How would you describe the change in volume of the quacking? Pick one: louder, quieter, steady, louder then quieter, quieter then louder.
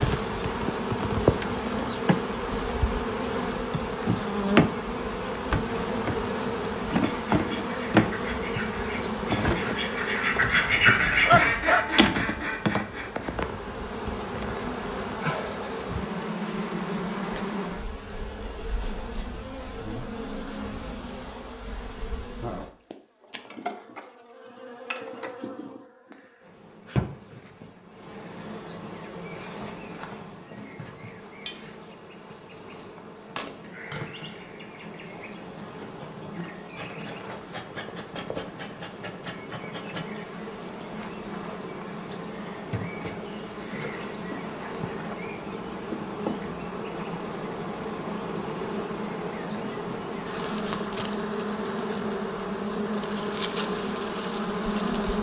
louder then quieter.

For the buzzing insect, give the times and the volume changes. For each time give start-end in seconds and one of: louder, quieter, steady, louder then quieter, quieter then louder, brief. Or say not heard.
0.0-55.1 quieter then louder.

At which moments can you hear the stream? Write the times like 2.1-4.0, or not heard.
not heard.